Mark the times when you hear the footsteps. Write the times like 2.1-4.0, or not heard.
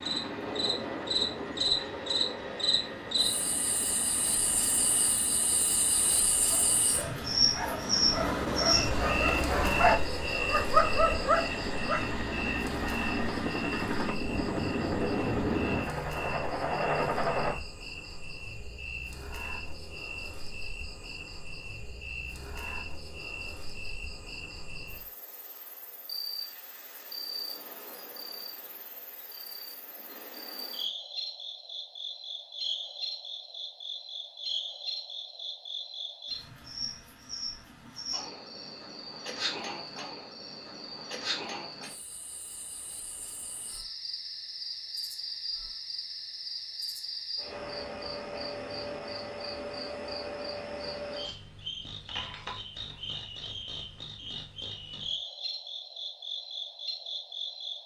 not heard.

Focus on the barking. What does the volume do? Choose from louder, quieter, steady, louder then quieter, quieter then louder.
louder.